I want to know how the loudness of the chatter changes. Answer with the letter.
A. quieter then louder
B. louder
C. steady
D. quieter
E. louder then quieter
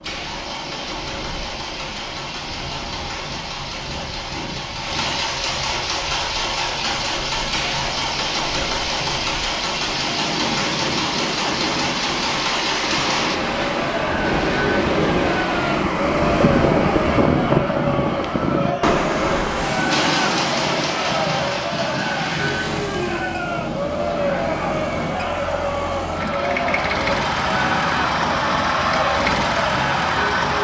C.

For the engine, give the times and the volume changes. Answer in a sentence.
You can hear the engine from 0.0 to 13.4 s, getting louder; and from 19.9 to 30.5 s, getting quieter then louder.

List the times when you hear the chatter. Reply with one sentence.
You can hear the chatter from 13.3 to 30.5 s.